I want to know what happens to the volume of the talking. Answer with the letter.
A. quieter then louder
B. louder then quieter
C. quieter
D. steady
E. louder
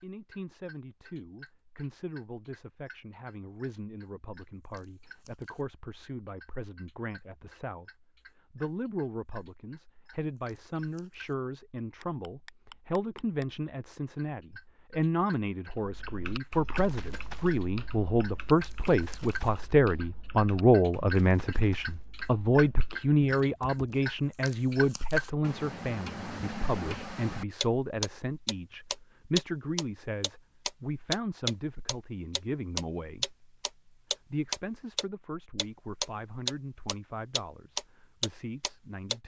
B.